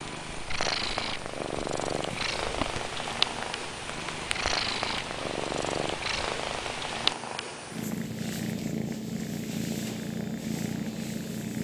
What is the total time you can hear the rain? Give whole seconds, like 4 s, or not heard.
7 s.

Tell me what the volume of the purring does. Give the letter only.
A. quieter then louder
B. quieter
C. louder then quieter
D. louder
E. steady
E.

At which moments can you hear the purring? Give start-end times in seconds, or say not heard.
0.0-11.5.